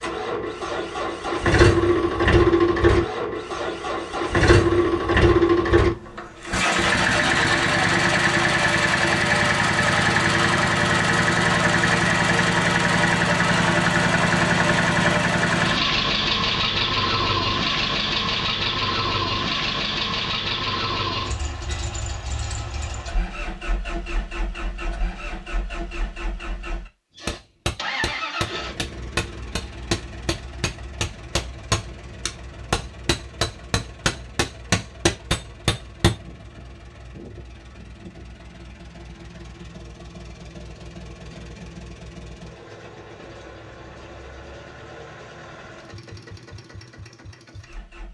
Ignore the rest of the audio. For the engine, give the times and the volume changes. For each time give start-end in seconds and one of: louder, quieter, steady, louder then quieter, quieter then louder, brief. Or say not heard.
0.0-48.0 quieter.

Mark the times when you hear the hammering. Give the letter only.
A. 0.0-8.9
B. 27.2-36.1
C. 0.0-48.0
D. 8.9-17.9
B.